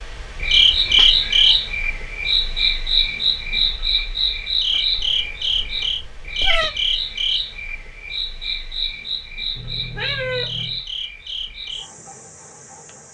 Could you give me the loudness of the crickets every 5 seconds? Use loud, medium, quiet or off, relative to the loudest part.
loud, medium, quiet.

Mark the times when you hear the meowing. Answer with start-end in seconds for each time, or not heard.
0.9-1.4, 5.0-6.7, 9.6-10.8.